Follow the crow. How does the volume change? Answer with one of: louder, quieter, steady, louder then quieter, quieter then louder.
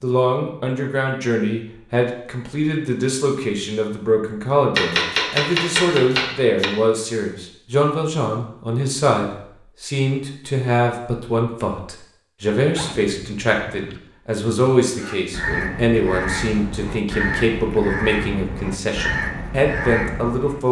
steady.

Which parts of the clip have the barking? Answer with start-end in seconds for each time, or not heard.
not heard.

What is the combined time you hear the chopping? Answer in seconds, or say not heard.
2 s.